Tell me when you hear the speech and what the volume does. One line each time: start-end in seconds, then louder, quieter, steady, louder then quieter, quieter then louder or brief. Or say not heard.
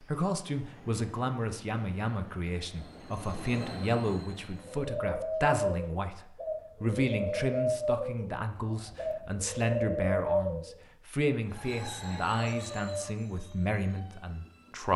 0.0-14.9 steady.